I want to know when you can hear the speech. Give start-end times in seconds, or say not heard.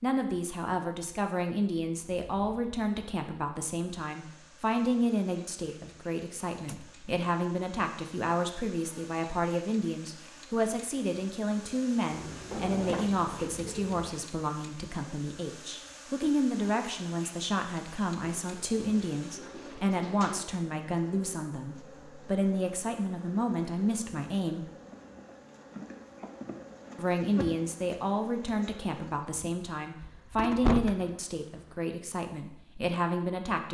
0.0-24.7, 26.9-33.6.